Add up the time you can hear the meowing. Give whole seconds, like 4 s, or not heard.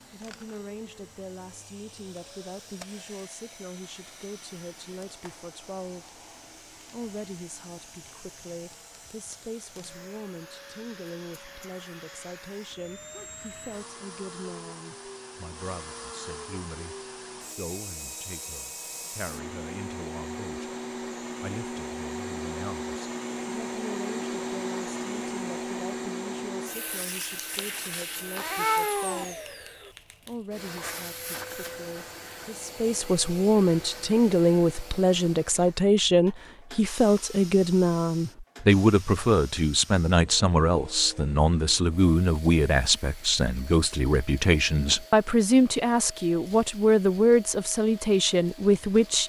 2 s.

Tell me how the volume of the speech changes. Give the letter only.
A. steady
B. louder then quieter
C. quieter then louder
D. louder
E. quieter
D.